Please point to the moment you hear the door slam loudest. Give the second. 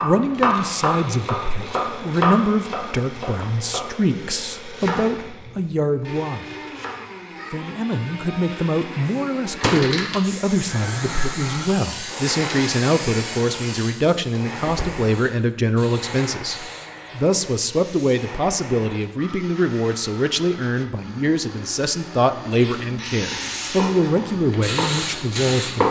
10 s.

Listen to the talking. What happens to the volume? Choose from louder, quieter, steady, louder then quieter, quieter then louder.
steady.